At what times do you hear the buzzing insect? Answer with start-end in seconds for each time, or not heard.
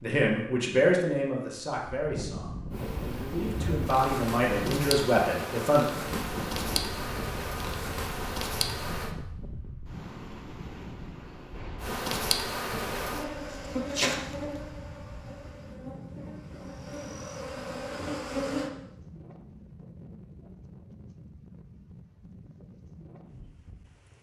2.7-9.2, 11.8-18.7.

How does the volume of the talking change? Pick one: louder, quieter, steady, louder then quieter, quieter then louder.
quieter then louder.